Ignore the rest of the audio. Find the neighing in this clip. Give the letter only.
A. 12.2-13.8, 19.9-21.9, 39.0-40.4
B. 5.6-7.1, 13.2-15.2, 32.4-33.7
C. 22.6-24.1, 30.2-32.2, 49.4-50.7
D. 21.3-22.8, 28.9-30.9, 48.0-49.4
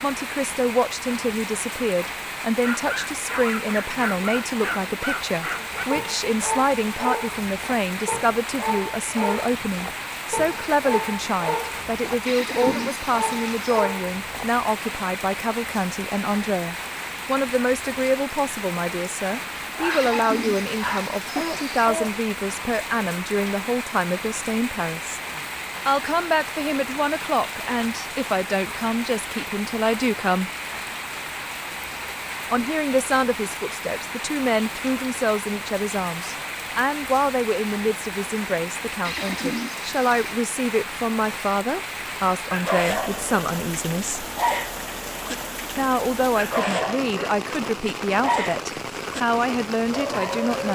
A.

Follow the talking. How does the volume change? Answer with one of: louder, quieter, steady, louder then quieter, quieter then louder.
steady.